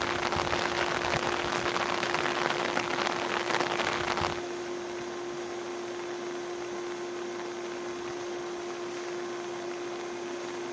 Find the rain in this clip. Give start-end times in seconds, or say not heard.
0.0-10.6.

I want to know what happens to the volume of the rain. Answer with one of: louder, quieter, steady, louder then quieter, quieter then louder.
quieter.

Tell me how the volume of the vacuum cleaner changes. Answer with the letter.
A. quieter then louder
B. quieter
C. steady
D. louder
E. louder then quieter
C.